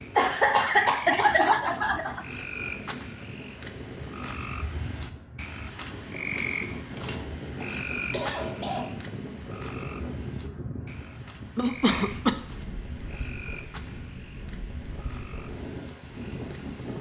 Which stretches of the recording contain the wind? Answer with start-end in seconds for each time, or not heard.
0.0-16.9.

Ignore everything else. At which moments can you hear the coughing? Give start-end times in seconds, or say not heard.
0.1-2.2, 7.0-8.9, 11.6-12.3.